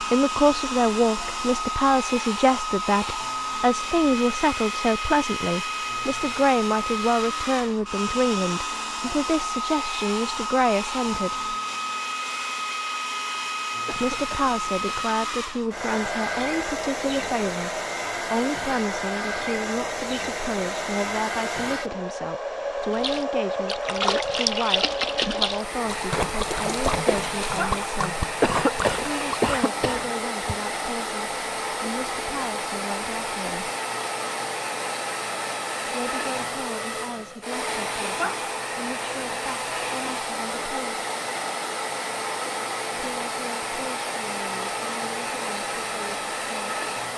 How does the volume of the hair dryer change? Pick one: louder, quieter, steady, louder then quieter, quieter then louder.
steady.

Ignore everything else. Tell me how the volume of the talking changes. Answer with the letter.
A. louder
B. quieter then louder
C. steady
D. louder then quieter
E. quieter
E.